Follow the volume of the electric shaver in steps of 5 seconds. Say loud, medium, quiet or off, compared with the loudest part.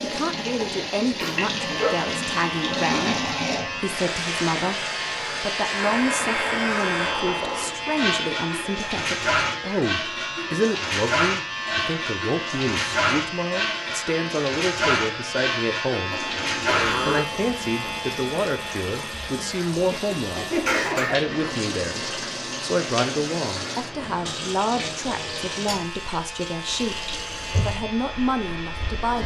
loud, loud, loud, loud, medium, medium.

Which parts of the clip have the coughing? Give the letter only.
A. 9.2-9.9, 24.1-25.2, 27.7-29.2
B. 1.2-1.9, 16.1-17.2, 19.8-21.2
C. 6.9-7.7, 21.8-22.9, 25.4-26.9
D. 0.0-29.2
B.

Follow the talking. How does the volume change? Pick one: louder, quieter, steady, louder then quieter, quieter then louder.
steady.